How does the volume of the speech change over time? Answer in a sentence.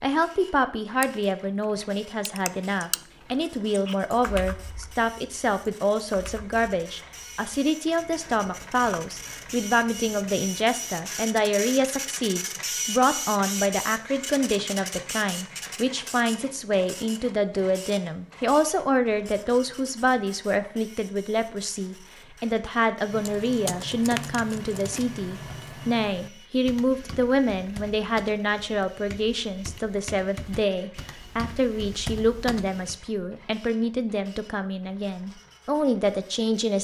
The volume of the speech stays about the same.